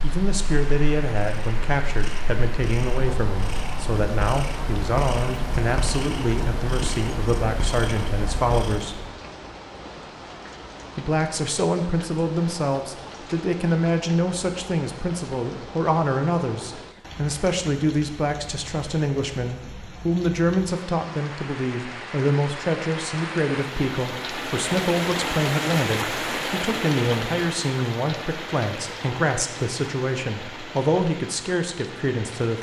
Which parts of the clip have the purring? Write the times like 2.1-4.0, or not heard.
0.0-9.1.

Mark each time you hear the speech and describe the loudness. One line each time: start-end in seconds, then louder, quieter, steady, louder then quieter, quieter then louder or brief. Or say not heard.
0.0-9.0 steady
10.9-32.5 steady.